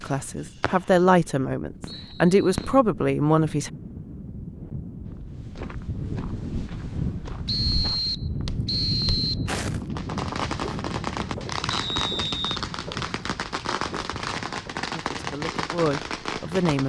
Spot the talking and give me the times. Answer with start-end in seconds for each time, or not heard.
0.0-3.7, 14.9-16.8.